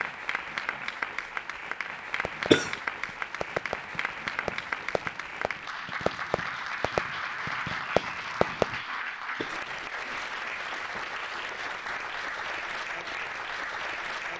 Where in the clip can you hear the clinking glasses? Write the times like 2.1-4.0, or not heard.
not heard.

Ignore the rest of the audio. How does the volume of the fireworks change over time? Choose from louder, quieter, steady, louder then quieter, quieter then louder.
quieter then louder.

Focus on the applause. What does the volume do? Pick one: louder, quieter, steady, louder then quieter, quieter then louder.
steady.